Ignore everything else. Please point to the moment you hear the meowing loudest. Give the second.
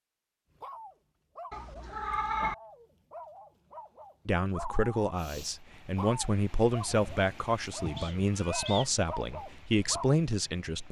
2 s.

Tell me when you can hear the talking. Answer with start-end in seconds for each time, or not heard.
4.2-10.8.